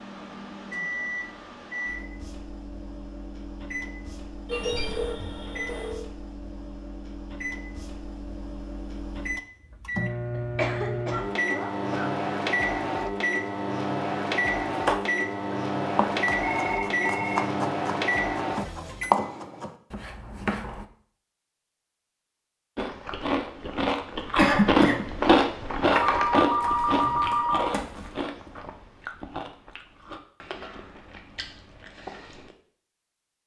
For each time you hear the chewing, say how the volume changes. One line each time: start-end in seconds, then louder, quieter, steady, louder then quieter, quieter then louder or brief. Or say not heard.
22.8-32.5 quieter.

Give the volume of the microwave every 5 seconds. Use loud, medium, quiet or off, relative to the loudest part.
medium, medium, loud, loud, off, off, off.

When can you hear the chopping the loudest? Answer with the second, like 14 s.
19 s.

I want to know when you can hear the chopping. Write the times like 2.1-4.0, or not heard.
14.8-20.9.